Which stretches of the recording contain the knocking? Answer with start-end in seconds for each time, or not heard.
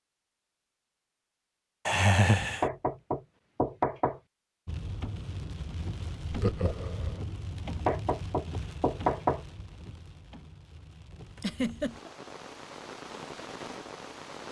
2.4-4.2, 7.7-9.4.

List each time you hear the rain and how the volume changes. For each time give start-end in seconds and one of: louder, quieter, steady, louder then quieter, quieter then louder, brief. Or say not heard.
4.7-14.4 quieter then louder.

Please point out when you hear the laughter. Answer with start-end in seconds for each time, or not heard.
1.9-2.6, 6.3-7.2, 11.3-12.1.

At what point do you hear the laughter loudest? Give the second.
2 s.